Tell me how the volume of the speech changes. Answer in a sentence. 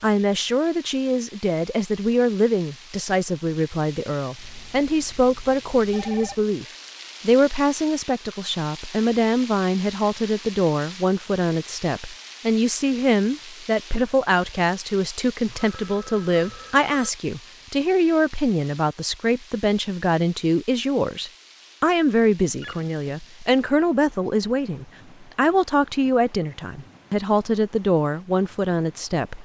The loudness of the speech stays about the same.